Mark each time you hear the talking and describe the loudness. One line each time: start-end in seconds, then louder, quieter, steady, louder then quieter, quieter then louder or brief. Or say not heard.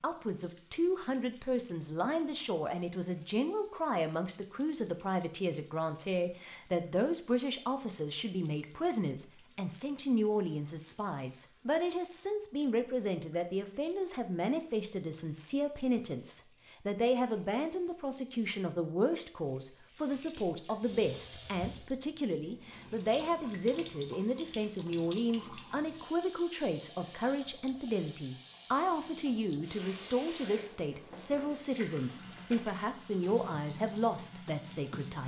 0.0-35.2 steady.